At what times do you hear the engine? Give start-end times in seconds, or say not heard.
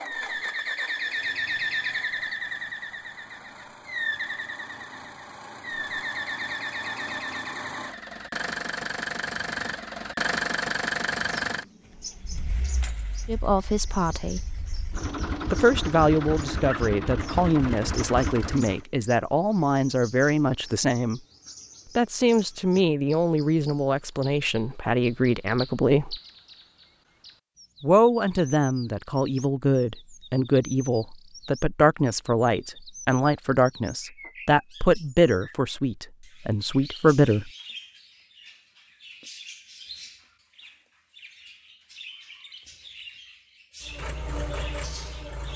0.0-18.9, 43.9-45.5.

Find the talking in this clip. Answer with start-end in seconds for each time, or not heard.
13.2-14.4, 15.5-21.2, 21.9-26.1, 27.8-37.5.